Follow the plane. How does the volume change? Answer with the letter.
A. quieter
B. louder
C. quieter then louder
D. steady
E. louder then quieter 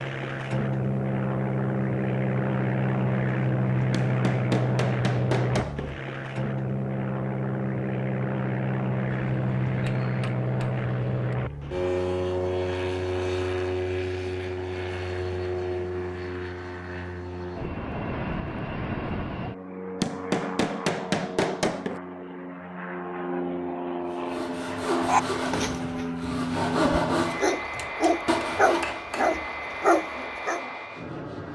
A.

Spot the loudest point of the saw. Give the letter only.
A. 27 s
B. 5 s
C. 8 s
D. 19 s
A.